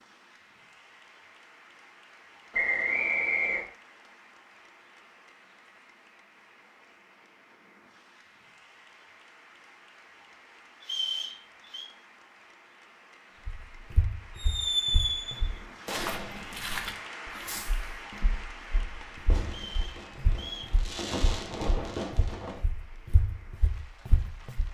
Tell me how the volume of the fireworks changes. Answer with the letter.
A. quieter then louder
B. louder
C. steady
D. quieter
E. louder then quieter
A.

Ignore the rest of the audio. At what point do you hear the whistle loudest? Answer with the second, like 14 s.
3 s.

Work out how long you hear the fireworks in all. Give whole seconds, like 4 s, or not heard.
8 s.